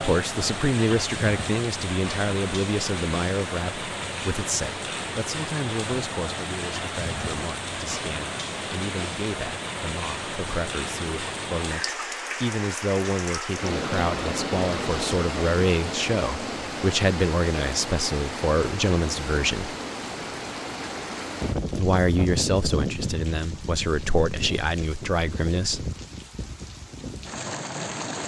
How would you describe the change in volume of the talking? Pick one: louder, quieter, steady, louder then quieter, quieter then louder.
quieter then louder.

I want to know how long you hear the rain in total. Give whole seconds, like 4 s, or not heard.
28 s.